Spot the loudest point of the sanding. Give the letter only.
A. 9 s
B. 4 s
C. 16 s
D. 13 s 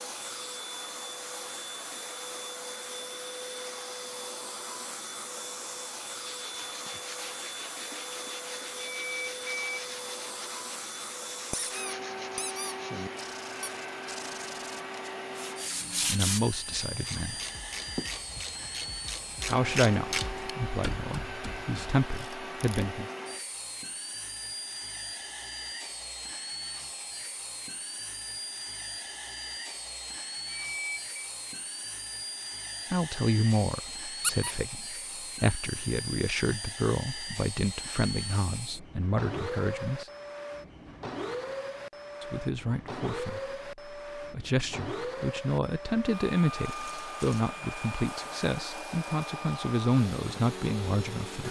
C.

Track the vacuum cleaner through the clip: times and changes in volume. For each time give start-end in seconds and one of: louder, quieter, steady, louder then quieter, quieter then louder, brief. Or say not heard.
0.0-51.4 steady.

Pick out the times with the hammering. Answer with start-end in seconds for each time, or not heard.
not heard.